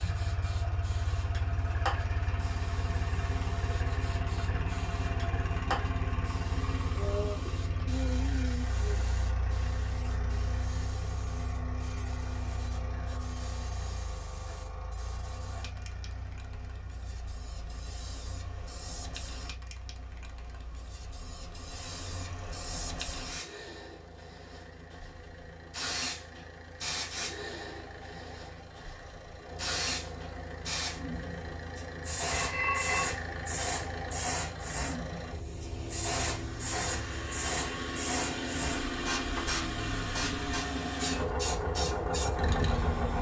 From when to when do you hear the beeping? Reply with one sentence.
The beeping can be heard from 32.3 to 33.2 s.